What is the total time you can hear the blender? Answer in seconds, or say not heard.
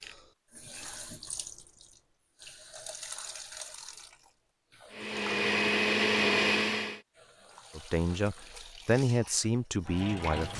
2 s.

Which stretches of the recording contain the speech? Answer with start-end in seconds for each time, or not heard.
7.8-10.5.